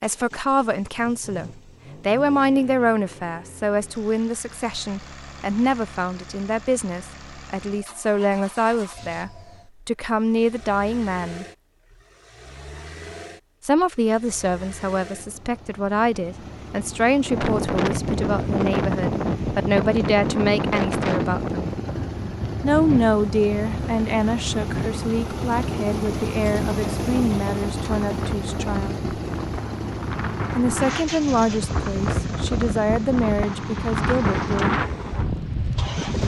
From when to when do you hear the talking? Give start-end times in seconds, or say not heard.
0.0-11.4, 13.7-21.6, 22.6-29.0, 30.6-34.8.